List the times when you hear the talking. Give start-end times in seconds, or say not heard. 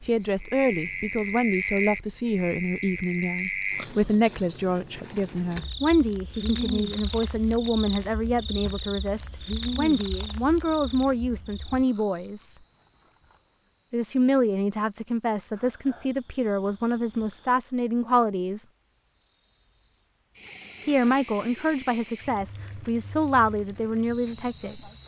0.0-12.6, 13.9-18.6, 20.9-24.9.